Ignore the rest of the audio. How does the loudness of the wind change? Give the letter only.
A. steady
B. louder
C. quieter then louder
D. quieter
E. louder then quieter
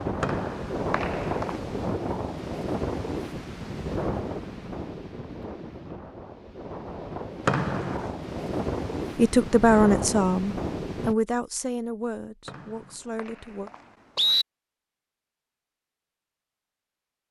C.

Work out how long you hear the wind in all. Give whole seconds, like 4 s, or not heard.
11 s.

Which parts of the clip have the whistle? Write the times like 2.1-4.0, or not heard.
0.2-1.5, 7.5-8.0, 12.4-14.4.